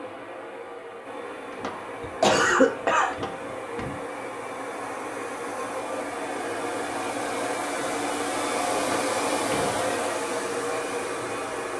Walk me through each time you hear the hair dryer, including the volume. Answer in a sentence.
The hair dryer can be heard from 0.0 to 11.7 s, getting louder.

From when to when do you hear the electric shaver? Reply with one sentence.
You can't hear the electric shaver here.